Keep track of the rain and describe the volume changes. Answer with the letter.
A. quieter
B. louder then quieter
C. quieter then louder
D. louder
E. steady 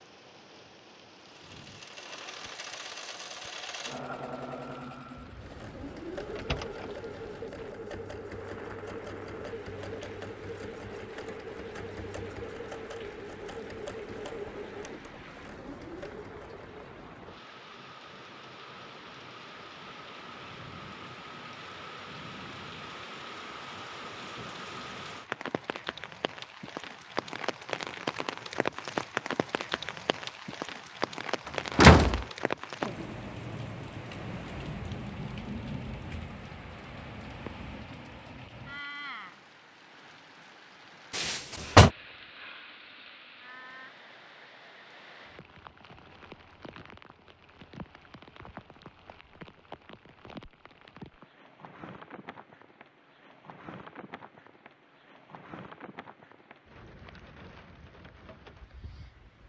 B.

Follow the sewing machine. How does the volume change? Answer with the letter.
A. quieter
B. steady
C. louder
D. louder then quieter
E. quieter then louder
B.